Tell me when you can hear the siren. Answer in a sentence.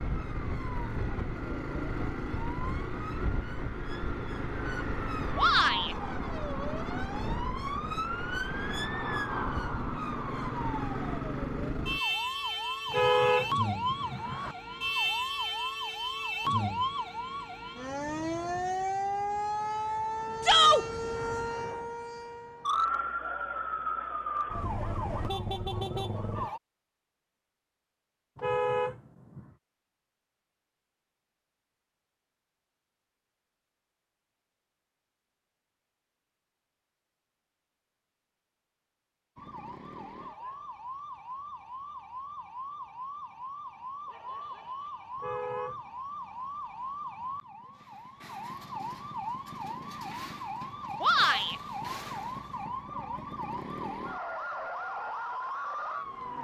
The siren can be heard from 0.0 to 26.6 s and from 39.4 to 56.4 s.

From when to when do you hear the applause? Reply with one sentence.
The applause can't be heard in this clip.